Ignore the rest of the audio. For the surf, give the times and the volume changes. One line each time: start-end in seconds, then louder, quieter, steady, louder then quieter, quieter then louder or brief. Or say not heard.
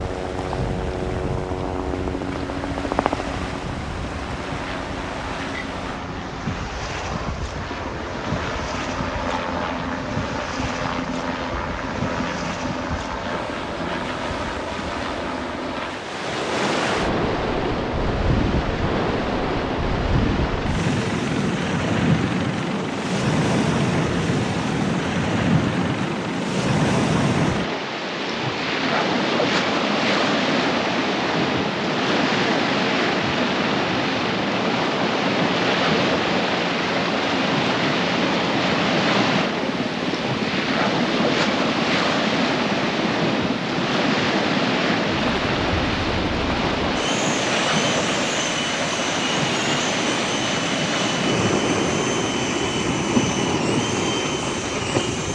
0.0-55.2 louder.